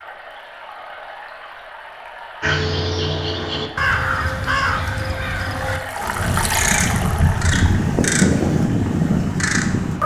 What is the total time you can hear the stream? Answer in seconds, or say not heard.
10 s.